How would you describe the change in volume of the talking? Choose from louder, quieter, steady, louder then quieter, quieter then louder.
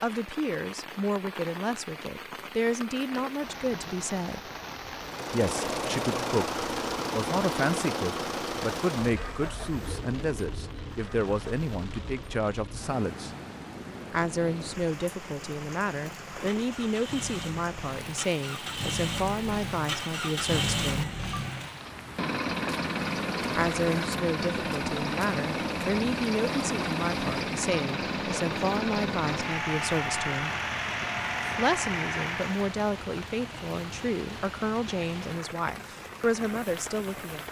steady.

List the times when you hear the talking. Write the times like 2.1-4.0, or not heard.
0.0-4.4, 5.3-13.3, 14.1-21.1, 23.6-30.6, 31.6-37.4.